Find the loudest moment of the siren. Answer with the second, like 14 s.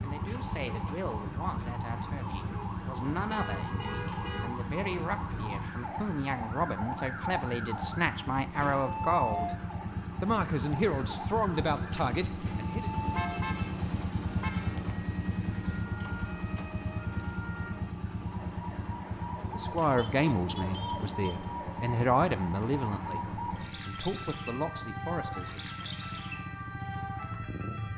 9 s.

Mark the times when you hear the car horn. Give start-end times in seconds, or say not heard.
3.1-4.5, 12.9-14.9, 19.9-21.4.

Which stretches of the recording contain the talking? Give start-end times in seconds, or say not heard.
0.0-9.5, 10.2-12.9, 19.5-25.9.